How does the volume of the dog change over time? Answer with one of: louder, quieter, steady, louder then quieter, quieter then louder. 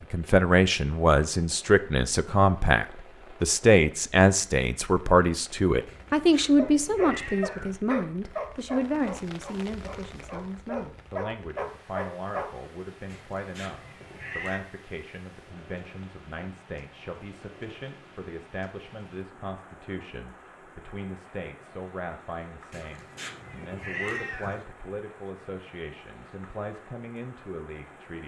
quieter then louder.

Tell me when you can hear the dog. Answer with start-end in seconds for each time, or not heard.
6.5-12.5.